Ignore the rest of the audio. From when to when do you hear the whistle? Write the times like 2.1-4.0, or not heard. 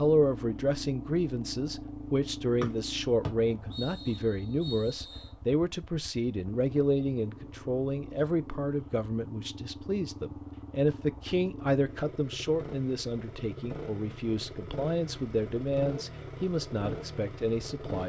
2.6-5.3.